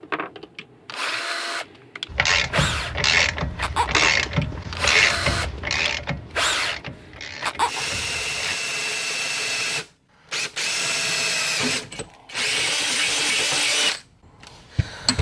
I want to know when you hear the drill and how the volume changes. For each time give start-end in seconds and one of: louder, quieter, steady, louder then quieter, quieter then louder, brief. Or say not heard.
0.0-15.1 louder.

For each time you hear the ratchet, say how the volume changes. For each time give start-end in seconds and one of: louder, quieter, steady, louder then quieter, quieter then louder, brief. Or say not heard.
2.1-8.6 quieter.